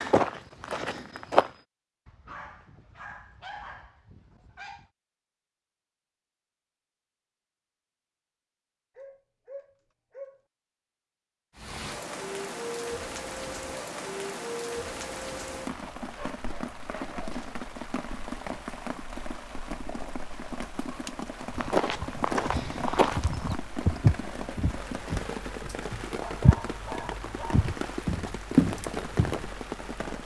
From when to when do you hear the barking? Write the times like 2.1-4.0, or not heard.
2.0-4.9, 8.9-10.4, 16.1-17.6, 26.2-27.6.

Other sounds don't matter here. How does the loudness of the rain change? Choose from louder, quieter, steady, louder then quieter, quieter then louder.
steady.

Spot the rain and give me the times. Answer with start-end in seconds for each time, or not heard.
11.6-30.2.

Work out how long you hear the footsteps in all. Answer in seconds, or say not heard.
9 s.